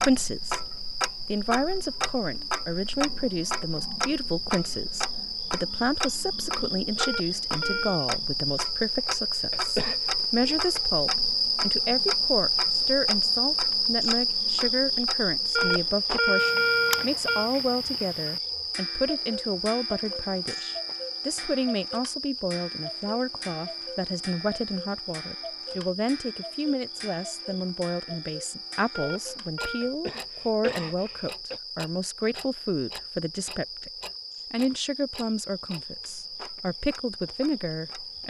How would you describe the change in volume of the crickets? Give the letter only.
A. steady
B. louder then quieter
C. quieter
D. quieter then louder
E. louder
B.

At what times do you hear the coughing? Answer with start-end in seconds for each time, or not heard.
9.5-10.0, 29.8-31.6.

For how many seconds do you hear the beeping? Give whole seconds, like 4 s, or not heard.
4 s.